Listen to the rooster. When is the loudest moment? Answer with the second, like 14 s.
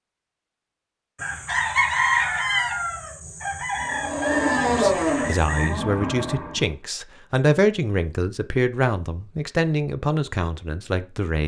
2 s.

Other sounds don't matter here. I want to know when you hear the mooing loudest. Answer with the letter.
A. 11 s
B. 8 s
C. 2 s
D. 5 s
D.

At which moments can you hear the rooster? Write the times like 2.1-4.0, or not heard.
1.1-5.8.